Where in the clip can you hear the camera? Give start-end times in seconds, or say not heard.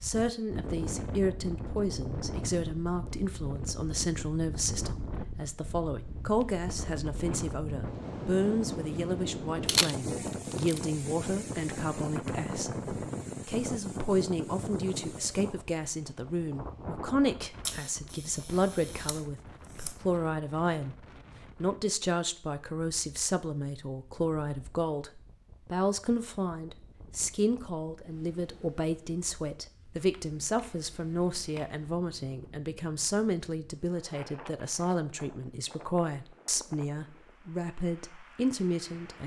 9.7-10.8, 17.6-19.9, 29.9-31.8.